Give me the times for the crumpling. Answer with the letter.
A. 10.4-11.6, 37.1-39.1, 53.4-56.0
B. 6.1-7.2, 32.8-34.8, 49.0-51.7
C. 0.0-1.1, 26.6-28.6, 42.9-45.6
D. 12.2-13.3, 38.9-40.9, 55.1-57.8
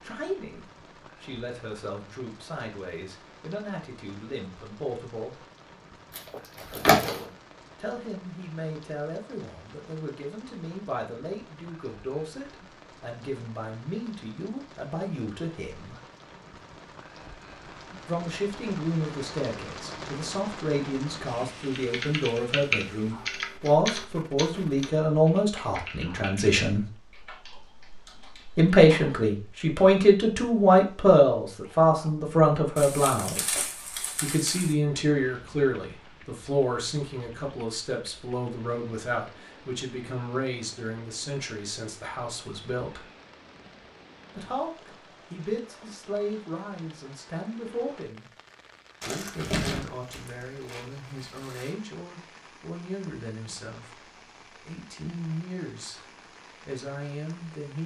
B.